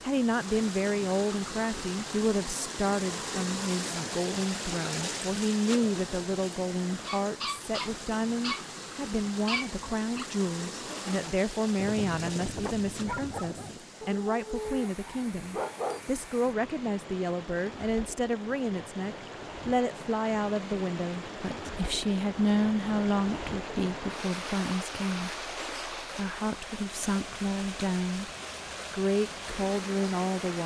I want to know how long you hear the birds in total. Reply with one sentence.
The birds can't be heard in this clip.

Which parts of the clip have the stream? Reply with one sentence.
The stream can be heard from 0.0 to 30.6 s.